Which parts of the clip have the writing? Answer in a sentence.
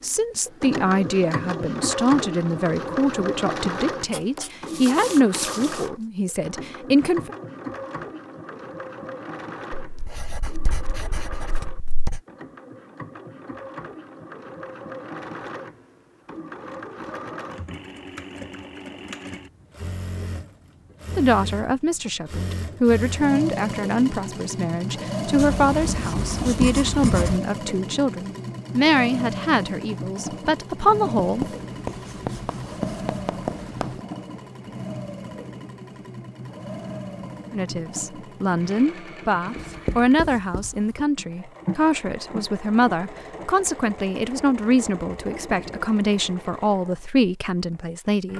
The writing can be heard from 4.1 to 5.8 s, from 9.8 to 12.2 s, from 25.4 to 27.4 s, from 31.1 to 34.0 s and from 39.5 to 41.0 s.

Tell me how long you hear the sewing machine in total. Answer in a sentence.
You can hear the sewing machine for 48 seconds altogether.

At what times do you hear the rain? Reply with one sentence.
The rain can't be heard in this clip.